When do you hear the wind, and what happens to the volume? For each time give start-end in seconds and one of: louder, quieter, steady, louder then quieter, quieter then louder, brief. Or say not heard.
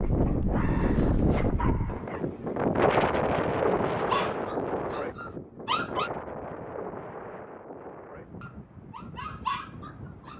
0.0-10.3 quieter.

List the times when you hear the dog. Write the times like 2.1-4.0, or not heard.
0.0-2.2, 4.0-6.1, 8.3-10.3.